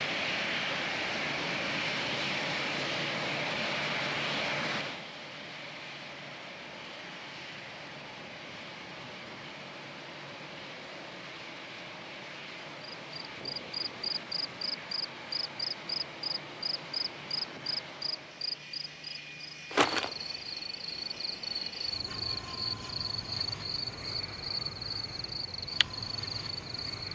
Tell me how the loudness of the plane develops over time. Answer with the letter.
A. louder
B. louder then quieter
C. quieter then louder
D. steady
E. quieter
E.